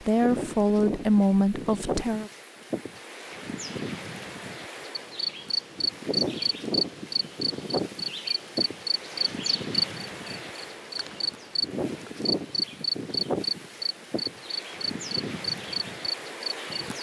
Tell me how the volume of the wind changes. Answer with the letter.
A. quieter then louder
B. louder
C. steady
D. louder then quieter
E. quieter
C.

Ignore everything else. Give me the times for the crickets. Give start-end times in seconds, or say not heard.
5.0-16.7.